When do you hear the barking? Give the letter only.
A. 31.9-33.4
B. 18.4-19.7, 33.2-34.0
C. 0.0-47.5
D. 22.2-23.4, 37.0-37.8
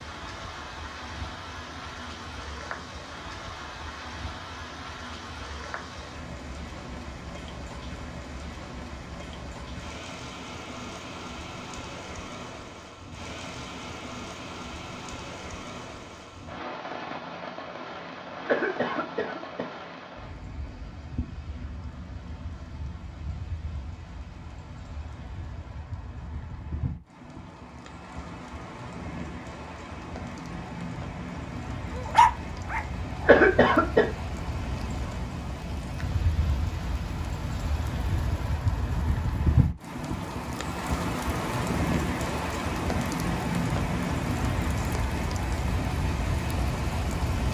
A.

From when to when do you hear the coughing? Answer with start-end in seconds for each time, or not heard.
18.4-19.7, 33.2-34.0.